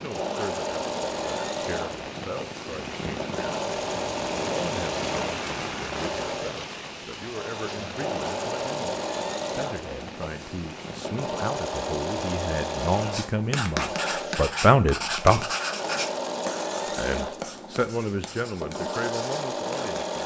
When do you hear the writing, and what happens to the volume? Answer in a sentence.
The writing can be heard from 13.1 to 20.2 s, getting quieter.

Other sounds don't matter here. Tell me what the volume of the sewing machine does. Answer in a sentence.
The volume of the sewing machine stays about the same.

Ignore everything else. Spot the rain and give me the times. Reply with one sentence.
The rain can be heard from 0.0 to 13.2 s.